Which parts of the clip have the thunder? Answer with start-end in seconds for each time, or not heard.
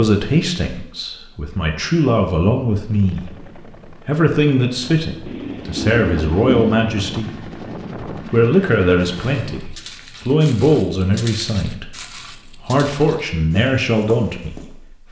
5.2-6.8.